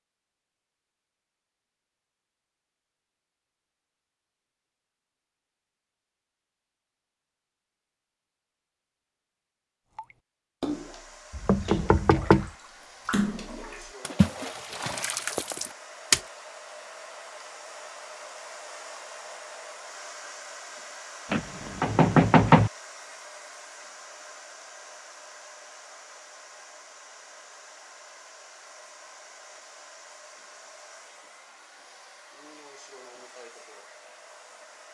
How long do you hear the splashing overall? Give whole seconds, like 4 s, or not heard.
6 s.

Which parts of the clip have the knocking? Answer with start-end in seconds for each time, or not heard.
11.3-12.5, 21.3-22.7.